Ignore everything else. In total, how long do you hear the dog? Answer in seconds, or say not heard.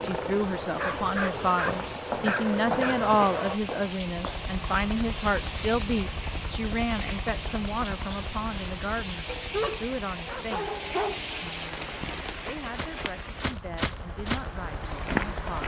4 s.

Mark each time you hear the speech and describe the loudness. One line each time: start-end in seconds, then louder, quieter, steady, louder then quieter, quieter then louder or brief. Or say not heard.
0.0-15.6 quieter.